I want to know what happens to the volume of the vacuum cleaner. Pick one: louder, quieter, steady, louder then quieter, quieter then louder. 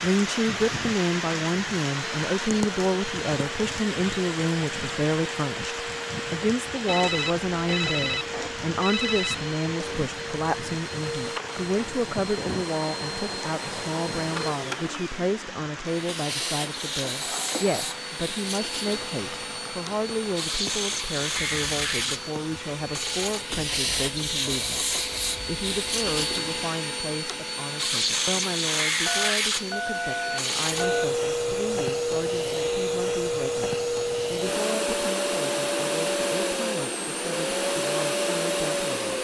louder.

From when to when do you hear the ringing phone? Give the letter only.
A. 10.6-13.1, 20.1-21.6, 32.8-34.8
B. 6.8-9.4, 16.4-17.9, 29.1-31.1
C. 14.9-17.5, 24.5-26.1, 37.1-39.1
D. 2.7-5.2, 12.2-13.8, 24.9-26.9
B.